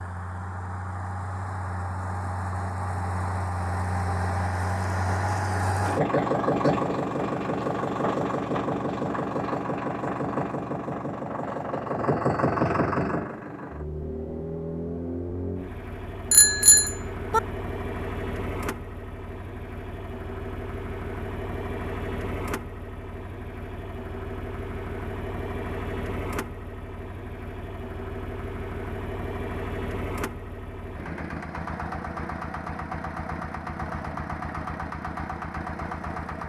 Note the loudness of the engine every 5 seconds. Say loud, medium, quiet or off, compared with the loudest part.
medium, loud, loud, medium, medium, medium, medium, medium.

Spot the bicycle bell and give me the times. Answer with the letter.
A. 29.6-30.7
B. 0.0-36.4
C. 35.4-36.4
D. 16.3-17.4
D.